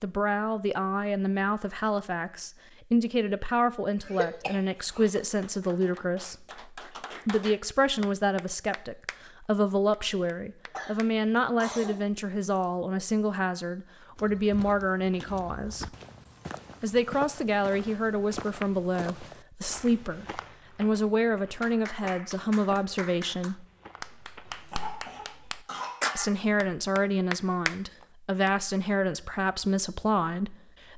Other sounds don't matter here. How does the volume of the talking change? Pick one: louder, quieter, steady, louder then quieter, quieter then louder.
steady.